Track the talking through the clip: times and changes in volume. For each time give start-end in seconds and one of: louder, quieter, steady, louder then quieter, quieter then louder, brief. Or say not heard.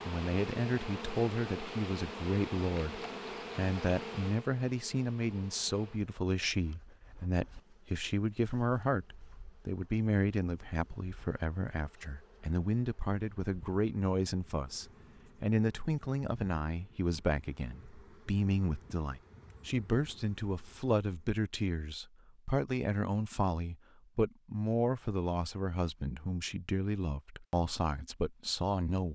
0.0-29.1 steady.